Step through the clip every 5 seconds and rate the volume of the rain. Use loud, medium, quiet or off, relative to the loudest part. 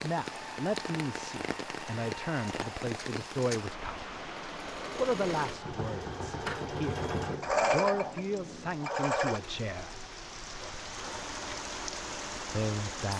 loud, medium, loud.